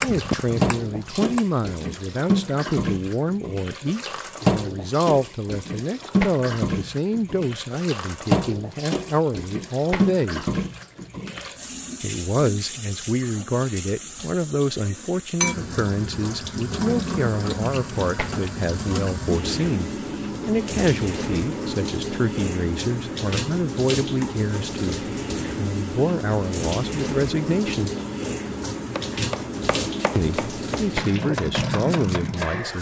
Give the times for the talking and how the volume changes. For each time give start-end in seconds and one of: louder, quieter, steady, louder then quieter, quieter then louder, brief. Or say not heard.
0.0-10.4 steady
12.0-27.9 steady
30.1-32.7 brief.